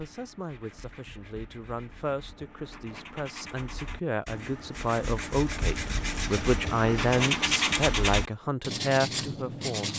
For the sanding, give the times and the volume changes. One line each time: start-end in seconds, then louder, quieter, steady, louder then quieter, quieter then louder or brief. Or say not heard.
0.0-9.9 louder.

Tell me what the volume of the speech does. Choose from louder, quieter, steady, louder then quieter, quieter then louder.
louder.